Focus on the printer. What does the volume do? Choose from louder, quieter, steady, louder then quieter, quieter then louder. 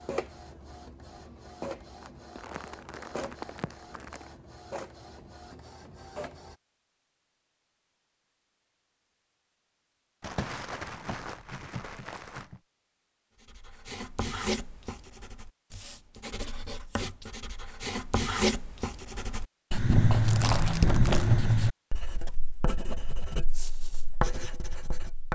louder then quieter.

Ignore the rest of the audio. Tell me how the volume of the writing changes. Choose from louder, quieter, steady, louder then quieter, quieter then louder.
louder then quieter.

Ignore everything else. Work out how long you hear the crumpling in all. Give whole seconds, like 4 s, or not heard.
6 s.